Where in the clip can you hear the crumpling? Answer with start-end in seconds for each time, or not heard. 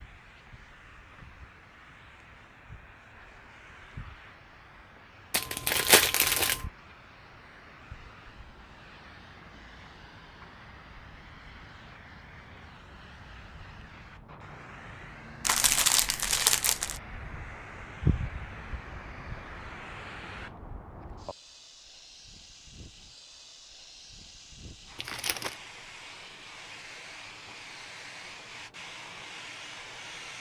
5.3-6.7, 15.4-17.0, 24.9-25.6.